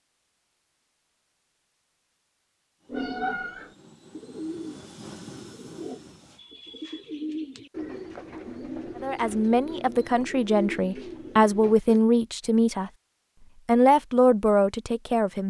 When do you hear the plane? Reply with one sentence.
The plane can be heard from 2.8 to 6.5 s.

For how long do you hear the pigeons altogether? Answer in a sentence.
The pigeons can be heard for 9 seconds in total.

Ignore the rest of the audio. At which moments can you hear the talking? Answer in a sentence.
You can hear the talking from 9.0 to 12.9 s and from 13.7 to 15.4 s.